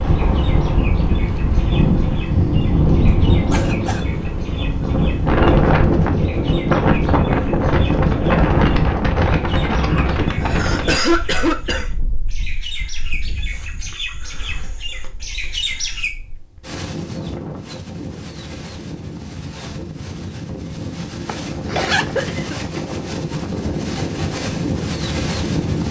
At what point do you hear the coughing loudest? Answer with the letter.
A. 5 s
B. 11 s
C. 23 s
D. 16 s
B.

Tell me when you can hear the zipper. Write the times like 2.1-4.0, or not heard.
21.2-22.4.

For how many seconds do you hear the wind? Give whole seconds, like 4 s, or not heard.
26 s.